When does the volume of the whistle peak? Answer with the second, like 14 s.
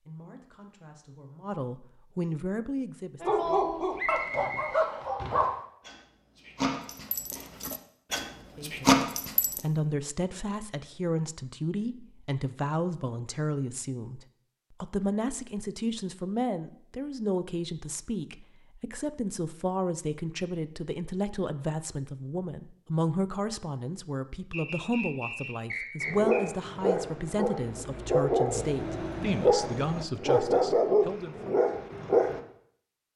4 s.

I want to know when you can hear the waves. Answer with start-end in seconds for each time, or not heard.
not heard.